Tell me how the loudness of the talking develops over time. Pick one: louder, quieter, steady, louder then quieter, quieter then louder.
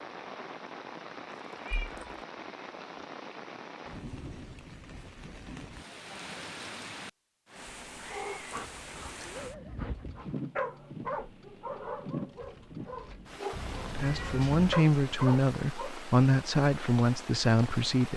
steady.